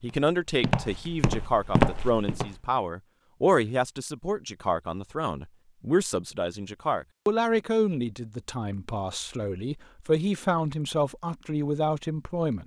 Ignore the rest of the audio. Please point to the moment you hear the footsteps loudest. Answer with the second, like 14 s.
2 s.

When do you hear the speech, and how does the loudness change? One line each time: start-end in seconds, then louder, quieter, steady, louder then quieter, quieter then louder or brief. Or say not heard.
0.0-12.6 steady.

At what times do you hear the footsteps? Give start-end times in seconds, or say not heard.
0.0-2.5.